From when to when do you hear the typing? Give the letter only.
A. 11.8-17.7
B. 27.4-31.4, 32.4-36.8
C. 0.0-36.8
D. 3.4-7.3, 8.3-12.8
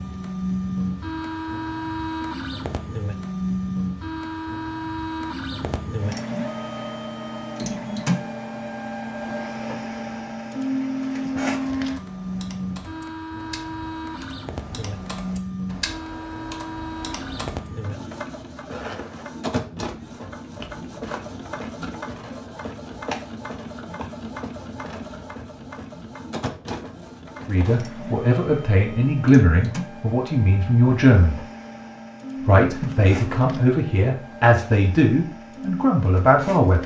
A.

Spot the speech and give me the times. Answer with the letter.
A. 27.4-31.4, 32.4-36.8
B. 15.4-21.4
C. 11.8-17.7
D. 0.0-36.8
A.